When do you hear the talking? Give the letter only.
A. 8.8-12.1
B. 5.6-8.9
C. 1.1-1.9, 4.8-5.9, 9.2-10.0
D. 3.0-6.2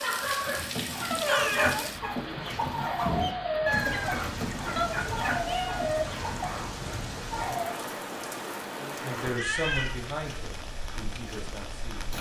A.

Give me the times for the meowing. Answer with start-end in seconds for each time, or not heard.
1.1-1.9, 4.8-5.9, 9.2-10.0.